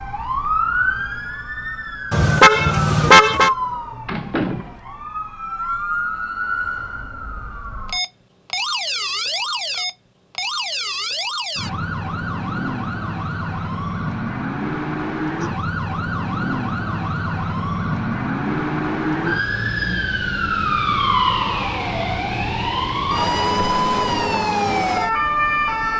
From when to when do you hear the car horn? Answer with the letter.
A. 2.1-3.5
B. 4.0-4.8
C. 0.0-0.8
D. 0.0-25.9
A.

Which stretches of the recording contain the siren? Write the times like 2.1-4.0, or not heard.
0.0-25.9.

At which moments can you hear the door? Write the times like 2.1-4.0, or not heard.
4.0-4.8.